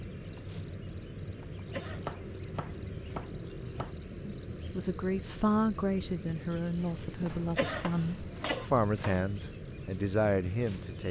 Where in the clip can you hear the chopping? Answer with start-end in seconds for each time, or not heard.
1.6-4.0, 7.2-9.2.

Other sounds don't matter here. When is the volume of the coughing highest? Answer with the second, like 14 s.
8 s.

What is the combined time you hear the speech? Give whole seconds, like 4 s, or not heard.
7 s.